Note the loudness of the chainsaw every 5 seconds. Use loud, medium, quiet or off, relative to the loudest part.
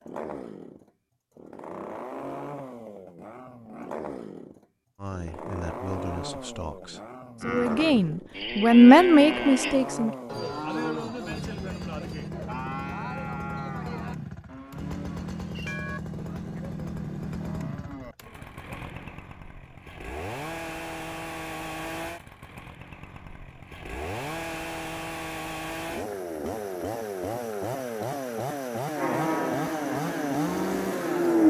medium, medium, medium, medium, medium, loud, loud.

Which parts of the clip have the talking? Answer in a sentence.
You can hear the talking from 5.0 to 10.2 s.